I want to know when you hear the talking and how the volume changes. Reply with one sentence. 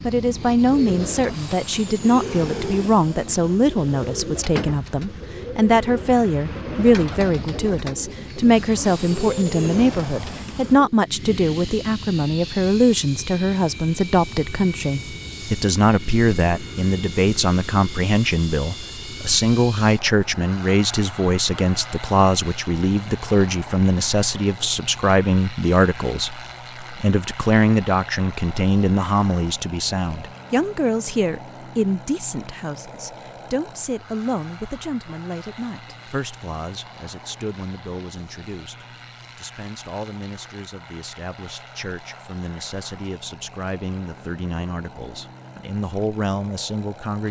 You can hear the talking from 0.0 to 47.2 s, getting quieter.